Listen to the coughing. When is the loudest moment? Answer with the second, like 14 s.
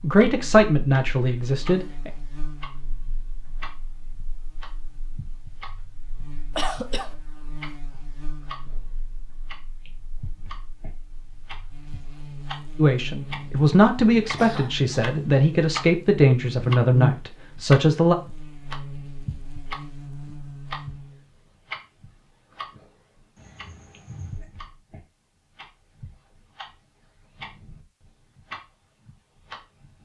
7 s.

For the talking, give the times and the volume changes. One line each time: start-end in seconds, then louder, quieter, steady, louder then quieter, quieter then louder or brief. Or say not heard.
0.0-2.1 brief
12.8-18.1 steady.